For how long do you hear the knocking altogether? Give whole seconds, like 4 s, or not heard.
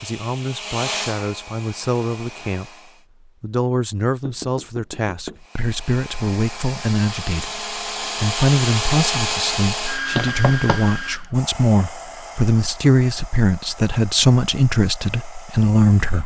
2 s.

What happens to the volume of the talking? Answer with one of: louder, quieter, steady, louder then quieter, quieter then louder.
louder.